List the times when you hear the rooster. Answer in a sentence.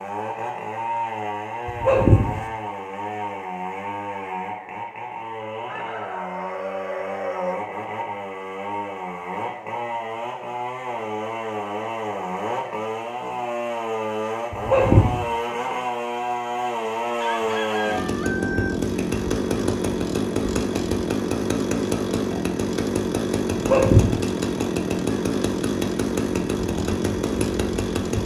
You can hear the rooster from 5.7 to 7.6 s and from 17.1 to 18.8 s.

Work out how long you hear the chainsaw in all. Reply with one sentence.
You can hear the chainsaw for 28 seconds altogether.